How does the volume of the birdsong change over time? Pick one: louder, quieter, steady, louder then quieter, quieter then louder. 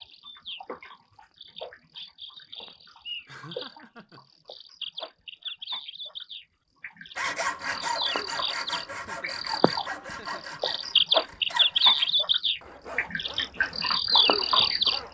louder.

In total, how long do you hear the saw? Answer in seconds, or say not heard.
8 s.